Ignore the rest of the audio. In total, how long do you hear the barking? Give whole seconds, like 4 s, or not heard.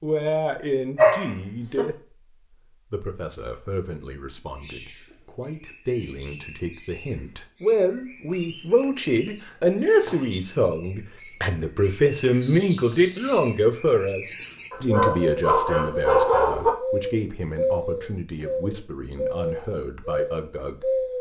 3 s.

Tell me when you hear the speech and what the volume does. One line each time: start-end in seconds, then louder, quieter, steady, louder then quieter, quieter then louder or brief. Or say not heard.
0.0-1.9 brief
2.9-21.1 louder then quieter.